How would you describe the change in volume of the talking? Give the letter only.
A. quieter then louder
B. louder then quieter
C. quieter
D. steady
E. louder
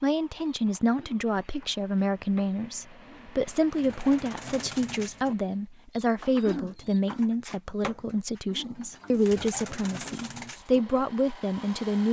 D.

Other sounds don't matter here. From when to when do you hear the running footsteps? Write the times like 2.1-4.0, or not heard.
not heard.